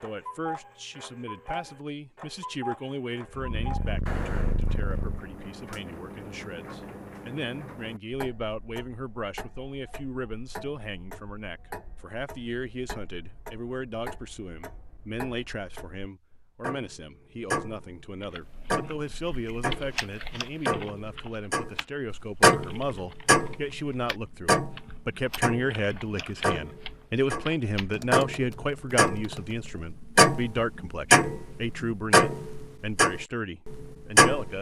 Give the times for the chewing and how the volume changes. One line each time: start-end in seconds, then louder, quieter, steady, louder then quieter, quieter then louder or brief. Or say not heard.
not heard.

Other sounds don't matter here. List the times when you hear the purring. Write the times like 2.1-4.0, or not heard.
3.3-5.4.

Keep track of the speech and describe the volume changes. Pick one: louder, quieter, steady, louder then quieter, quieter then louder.
louder.